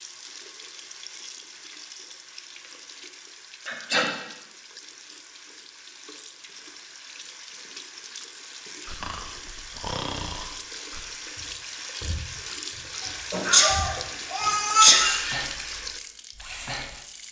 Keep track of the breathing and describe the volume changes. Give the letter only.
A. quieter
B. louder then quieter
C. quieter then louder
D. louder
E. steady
C.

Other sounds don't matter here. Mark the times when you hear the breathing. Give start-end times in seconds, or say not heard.
8.8-17.0.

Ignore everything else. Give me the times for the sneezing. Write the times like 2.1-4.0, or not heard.
3.6-4.1, 13.3-15.4.